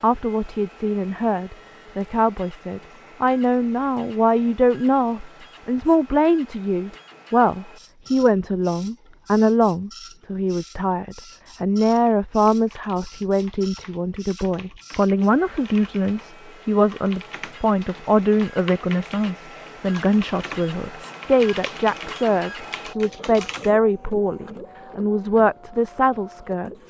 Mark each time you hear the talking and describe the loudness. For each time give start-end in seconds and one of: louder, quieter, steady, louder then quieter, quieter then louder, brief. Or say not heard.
0.0-26.8 steady.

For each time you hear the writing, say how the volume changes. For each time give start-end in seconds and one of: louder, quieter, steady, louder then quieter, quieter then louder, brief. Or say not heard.
not heard.